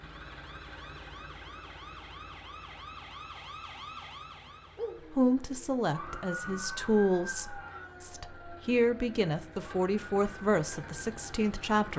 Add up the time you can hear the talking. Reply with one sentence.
The talking can be heard for 7 seconds in total.